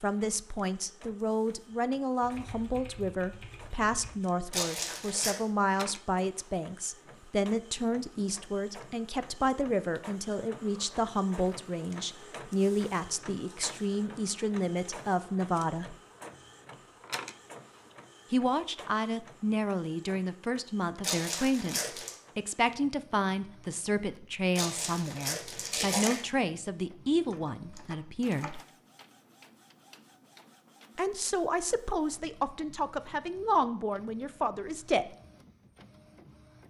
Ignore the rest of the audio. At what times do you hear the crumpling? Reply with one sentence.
The crumpling can be heard from 4.5 to 5.3 s, from 21.0 to 22.1 s and from 24.6 to 26.2 s.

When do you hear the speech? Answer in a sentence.
You can hear the speech from 0.0 to 15.9 s, from 18.3 to 28.6 s and from 30.9 to 35.1 s.